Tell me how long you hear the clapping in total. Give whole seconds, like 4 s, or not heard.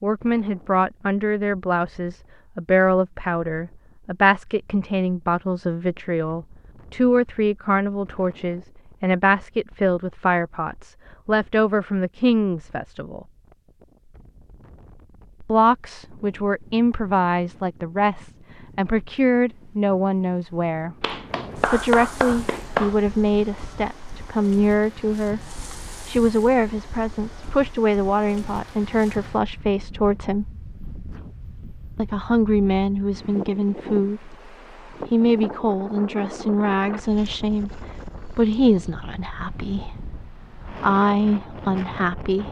2 s.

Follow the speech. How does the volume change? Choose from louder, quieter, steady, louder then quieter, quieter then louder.
steady.